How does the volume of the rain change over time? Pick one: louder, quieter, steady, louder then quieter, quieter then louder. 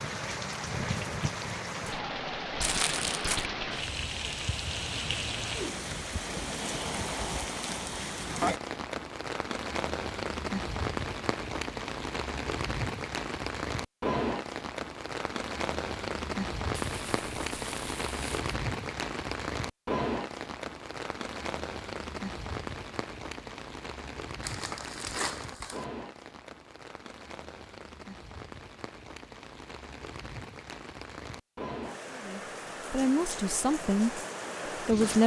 quieter.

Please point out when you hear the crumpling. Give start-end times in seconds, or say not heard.
2.6-3.5, 16.7-18.5, 24.4-25.9.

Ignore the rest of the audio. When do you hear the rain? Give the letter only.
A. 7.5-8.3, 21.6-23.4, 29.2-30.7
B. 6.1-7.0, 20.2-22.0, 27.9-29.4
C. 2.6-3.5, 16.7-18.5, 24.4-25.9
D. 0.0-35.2
D.